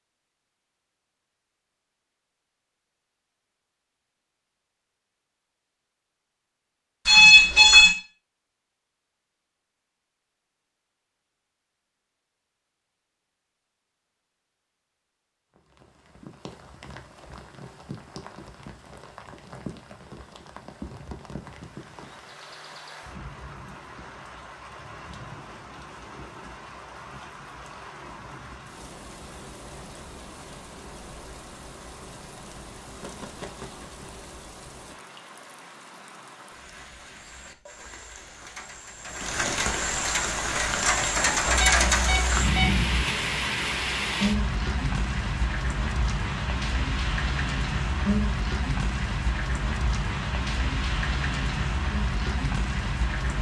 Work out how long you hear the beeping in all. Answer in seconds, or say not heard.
2 s.